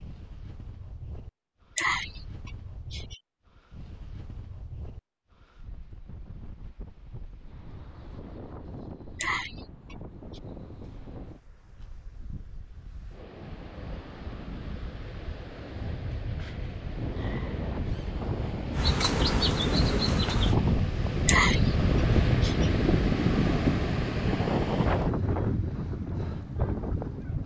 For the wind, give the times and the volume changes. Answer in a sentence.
You can hear the wind from 0.0 to 27.4 s, getting louder.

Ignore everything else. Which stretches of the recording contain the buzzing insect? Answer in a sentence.
You can hear the buzzing insect from 18.7 to 20.6 s.